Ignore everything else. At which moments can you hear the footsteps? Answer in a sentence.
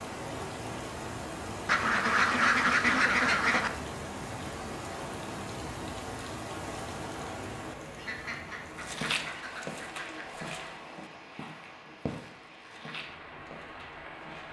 You can hear the footsteps from 8.8 to 14.4 s.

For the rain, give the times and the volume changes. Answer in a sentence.
You can hear the rain from 0.0 to 14.4 s, getting quieter.